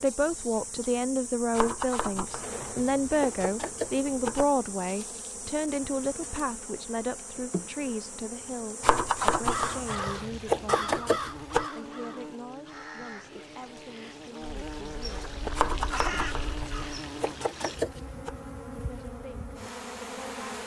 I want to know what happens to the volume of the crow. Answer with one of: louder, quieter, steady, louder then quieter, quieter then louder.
quieter then louder.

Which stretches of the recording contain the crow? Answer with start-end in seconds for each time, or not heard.
9.3-17.0.